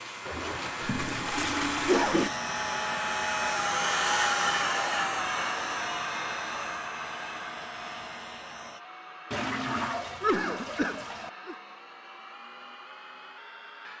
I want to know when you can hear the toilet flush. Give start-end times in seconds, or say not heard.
0.8-2.3, 9.3-11.3.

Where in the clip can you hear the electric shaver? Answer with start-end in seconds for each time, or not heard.
0.0-8.8.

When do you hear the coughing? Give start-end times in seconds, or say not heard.
0.2-2.3, 10.2-11.6.